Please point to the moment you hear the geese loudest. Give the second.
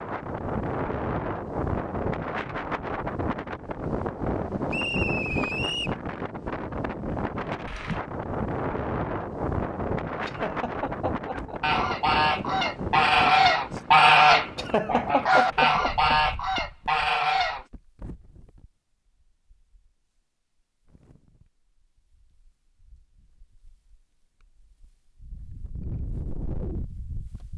14 s.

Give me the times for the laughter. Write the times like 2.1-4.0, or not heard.
10.2-11.6, 14.6-16.6.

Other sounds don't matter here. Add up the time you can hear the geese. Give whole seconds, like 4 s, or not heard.
6 s.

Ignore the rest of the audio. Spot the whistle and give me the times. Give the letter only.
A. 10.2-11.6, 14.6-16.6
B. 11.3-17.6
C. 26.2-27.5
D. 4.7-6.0
D.